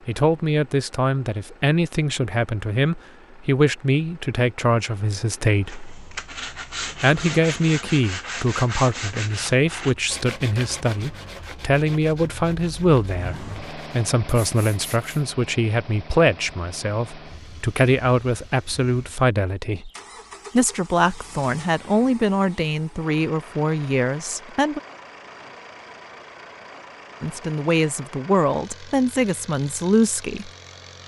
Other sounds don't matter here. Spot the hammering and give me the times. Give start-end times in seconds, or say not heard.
not heard.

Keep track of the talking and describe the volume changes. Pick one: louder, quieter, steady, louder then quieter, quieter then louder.
steady.